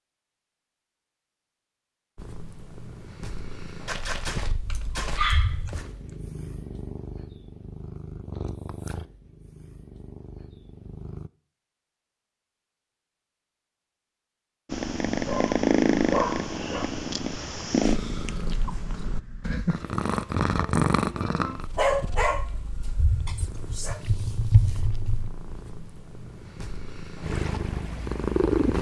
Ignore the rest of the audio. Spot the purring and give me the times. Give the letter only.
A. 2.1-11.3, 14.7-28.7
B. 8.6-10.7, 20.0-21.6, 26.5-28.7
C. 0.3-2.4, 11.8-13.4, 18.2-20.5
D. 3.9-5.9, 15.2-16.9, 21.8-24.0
A.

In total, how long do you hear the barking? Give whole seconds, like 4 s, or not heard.
6 s.